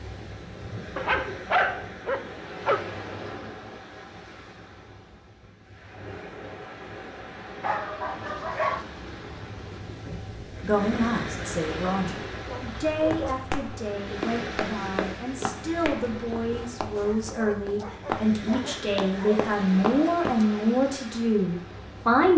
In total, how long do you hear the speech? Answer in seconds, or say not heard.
12 s.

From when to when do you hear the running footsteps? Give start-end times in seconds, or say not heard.
12.9-20.5.